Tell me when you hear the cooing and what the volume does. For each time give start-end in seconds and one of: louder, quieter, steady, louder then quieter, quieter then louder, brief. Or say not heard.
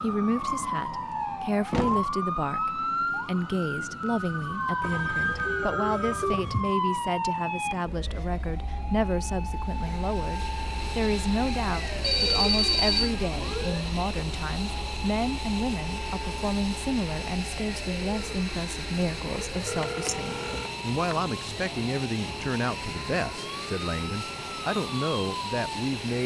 not heard.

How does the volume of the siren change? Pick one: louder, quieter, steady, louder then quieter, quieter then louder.
quieter.